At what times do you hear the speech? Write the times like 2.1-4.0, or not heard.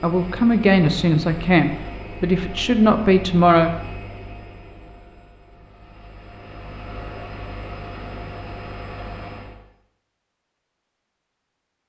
0.0-3.7.